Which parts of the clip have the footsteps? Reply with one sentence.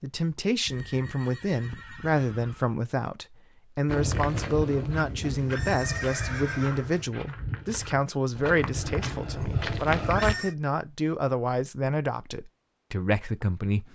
You can hear the footsteps from 3.9 to 10.3 s.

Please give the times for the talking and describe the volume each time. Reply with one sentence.
You can hear the talking from 0.0 to 13.9 s, at a steady volume.